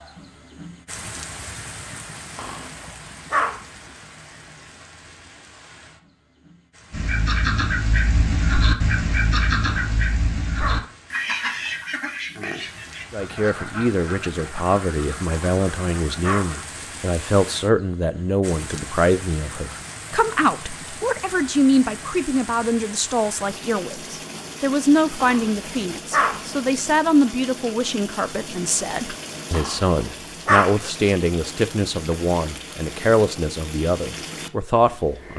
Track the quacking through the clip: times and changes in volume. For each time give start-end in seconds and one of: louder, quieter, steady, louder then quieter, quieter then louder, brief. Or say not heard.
6.9-16.6 quieter.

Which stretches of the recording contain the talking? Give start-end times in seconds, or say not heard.
13.1-35.3.